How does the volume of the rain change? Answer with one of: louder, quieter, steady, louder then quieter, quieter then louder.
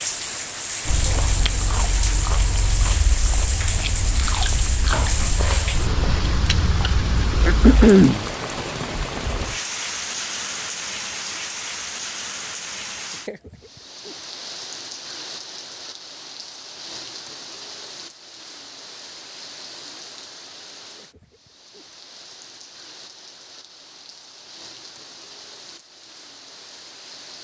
quieter.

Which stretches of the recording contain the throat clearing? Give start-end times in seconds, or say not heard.
7.5-8.2.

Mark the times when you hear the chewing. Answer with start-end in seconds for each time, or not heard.
0.8-7.8.